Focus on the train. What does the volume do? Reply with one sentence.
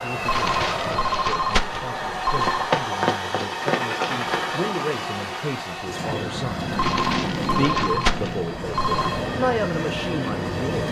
The volume of the train stays about the same.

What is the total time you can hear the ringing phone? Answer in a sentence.
The ringing phone can be heard for 5 seconds in total.